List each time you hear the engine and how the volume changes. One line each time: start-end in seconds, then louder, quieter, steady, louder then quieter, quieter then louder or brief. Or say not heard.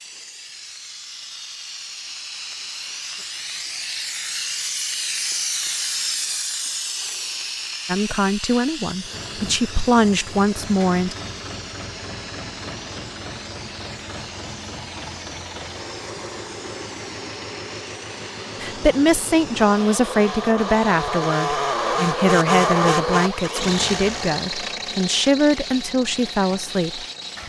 9.0-27.4 louder then quieter.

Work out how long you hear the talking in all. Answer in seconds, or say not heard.
12 s.